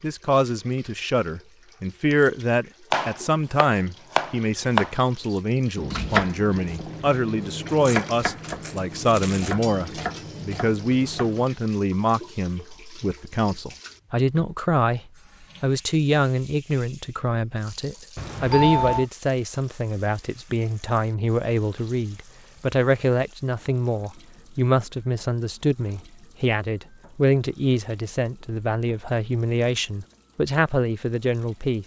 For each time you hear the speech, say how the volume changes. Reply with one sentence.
The speech can be heard from 0.0 to 15.0 s, at a steady volume; and from 15.6 to 31.8 s, at a steady volume.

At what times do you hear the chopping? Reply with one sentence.
You can hear the chopping from 2.9 to 11.4 s.